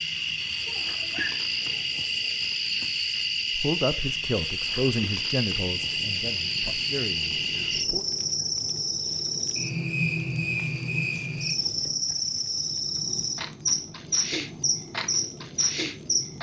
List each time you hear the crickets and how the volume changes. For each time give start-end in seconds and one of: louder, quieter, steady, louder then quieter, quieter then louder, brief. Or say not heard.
0.0-16.3 steady.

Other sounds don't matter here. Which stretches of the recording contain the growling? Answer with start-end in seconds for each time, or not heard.
0.7-1.8.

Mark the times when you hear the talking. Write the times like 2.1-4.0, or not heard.
3.5-8.1.